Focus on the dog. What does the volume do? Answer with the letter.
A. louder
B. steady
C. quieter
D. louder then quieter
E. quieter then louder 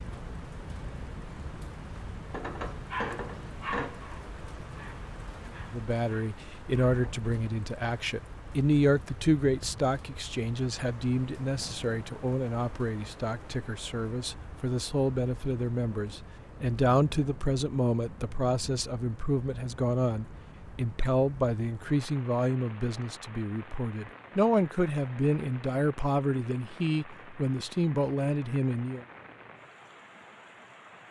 C.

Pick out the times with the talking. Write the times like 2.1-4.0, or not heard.
5.7-29.1.